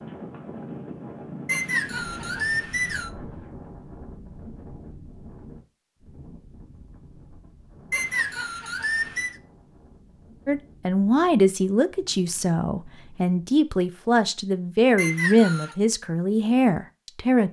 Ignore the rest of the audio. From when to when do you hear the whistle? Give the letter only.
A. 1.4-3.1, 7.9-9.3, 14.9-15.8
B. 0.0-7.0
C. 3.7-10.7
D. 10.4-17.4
A.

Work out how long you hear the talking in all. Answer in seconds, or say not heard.
7 s.